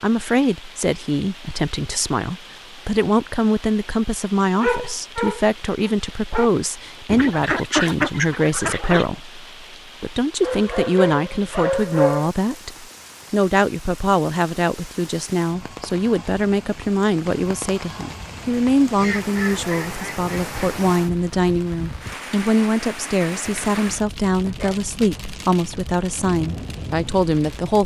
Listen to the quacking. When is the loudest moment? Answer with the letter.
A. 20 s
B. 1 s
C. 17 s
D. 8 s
D.